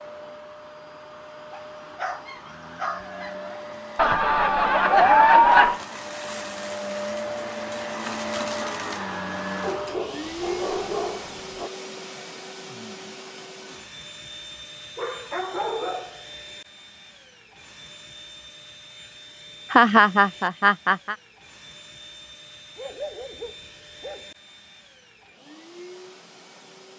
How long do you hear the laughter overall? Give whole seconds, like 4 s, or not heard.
3 s.